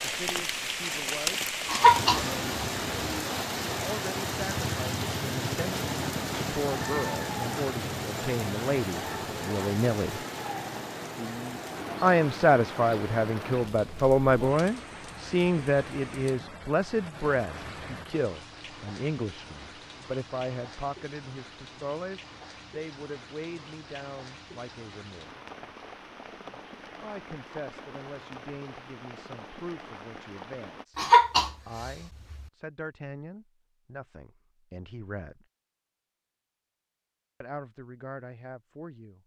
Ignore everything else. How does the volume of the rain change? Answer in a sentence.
The loudness of the rain goes down.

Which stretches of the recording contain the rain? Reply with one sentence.
You can hear the rain from 0.0 to 30.9 s.